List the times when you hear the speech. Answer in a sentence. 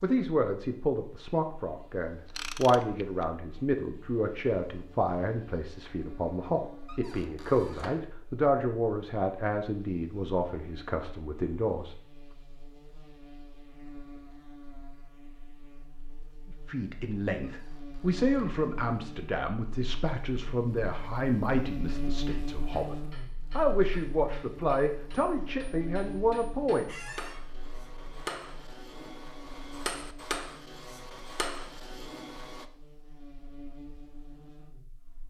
You can hear the speech from 0.0 to 11.9 s and from 16.6 to 26.9 s.